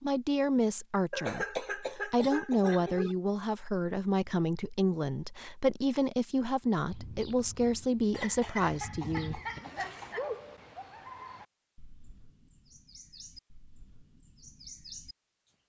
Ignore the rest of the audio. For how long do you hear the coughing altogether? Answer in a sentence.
The coughing can be heard for 4 seconds in total.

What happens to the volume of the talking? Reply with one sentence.
The volume of the talking stays about the same.